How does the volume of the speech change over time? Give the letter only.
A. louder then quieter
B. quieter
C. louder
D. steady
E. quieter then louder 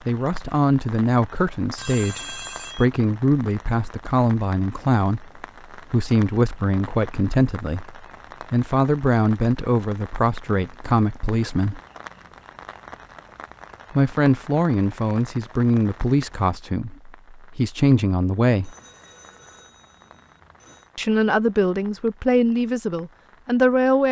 D.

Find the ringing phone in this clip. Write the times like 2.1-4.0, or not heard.
1.8-2.9, 18.6-20.9.